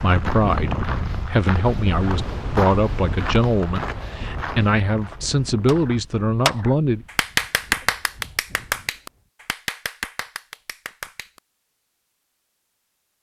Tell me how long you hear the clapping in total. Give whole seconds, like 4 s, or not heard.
6 s.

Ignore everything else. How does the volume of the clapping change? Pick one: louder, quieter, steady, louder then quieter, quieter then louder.
quieter.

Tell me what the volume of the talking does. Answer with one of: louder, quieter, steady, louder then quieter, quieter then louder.
steady.